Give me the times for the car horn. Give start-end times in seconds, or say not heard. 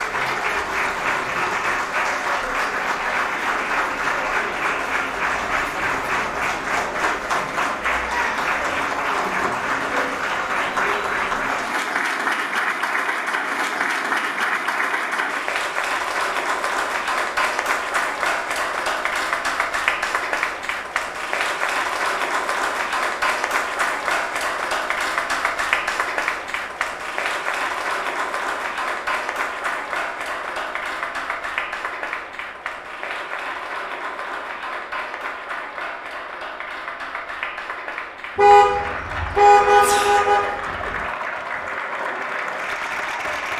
38.4-40.9.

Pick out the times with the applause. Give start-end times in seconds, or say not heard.
0.0-43.5.